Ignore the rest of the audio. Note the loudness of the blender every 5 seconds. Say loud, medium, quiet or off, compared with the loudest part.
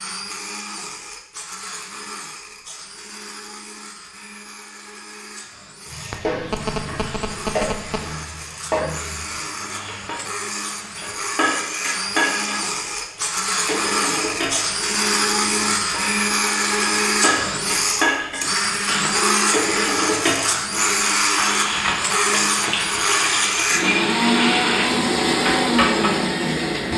quiet, quiet, medium, loud, loud, loud.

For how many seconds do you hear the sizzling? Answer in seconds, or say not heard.
21 s.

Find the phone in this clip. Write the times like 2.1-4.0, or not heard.
6.1-8.1.